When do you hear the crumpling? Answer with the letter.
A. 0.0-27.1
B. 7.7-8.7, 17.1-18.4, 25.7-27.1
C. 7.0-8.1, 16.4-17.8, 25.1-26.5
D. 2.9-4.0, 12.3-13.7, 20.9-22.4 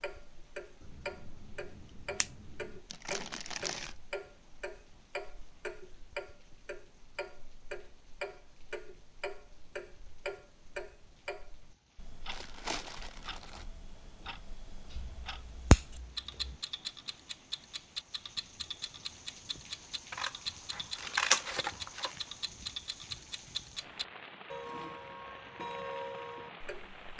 D.